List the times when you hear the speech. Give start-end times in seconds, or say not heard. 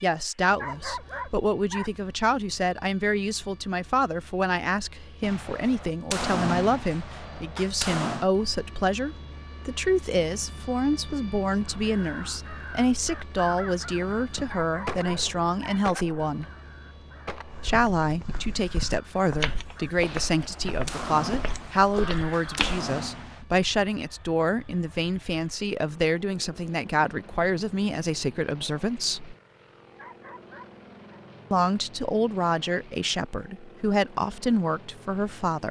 0.0-16.4, 17.6-29.4, 31.5-35.6.